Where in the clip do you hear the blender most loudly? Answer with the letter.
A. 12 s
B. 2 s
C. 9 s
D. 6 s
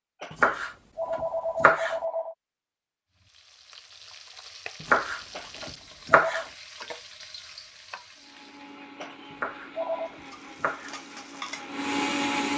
A.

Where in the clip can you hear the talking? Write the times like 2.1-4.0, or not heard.
not heard.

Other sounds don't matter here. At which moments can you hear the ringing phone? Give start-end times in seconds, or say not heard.
0.2-2.4, 5.3-6.5, 9.0-10.2.